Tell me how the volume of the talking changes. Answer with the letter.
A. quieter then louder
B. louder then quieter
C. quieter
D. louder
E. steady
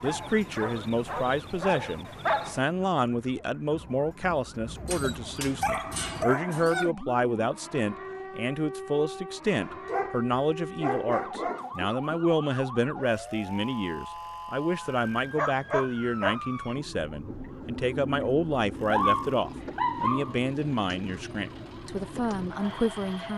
E.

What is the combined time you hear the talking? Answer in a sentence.
The talking can be heard for 23 seconds in total.